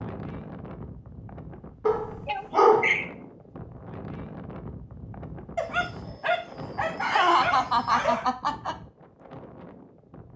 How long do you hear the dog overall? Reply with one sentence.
The dog can be heard for 4 seconds in total.